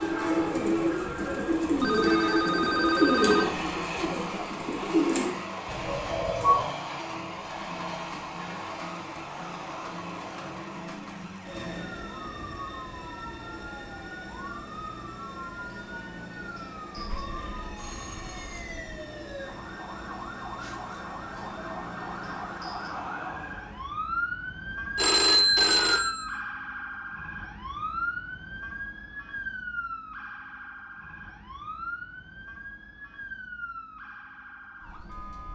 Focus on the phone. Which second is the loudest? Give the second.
25 s.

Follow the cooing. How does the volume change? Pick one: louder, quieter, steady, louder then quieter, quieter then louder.
louder then quieter.